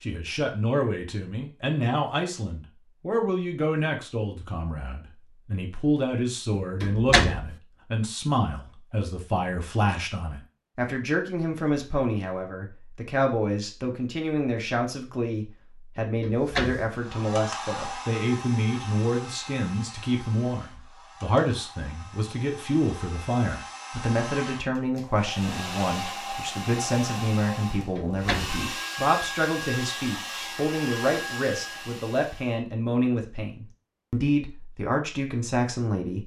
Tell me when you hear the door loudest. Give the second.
7 s.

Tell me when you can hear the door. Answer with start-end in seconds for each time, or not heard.
6.8-7.5, 16.2-16.9, 27.9-28.6.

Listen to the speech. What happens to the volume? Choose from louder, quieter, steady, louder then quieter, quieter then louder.
steady.